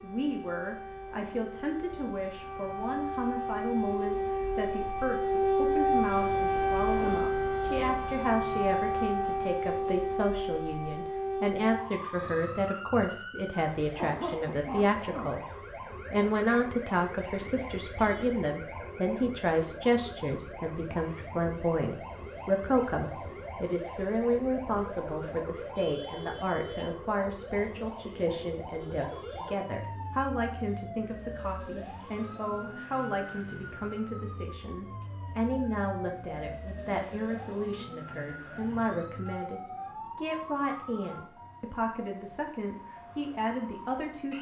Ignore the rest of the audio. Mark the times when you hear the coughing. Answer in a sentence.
The coughing can be heard from 13.9 to 15.4 s.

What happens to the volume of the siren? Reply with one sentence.
The loudness of the siren goes down.